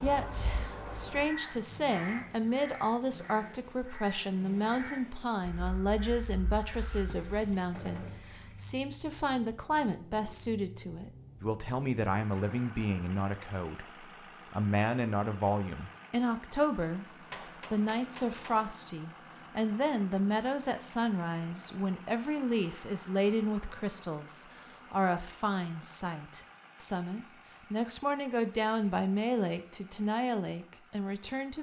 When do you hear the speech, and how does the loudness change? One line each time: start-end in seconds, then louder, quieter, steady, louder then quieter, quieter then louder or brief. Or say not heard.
0.0-31.5 steady.